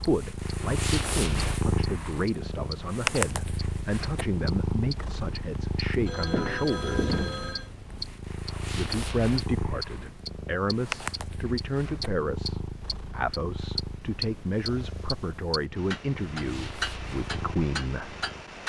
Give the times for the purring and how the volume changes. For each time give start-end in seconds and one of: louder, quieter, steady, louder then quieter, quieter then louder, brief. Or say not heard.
0.0-18.6 quieter.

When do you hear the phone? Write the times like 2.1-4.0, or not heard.
6.0-7.7.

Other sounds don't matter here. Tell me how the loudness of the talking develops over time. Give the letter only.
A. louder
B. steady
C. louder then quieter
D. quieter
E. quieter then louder
B.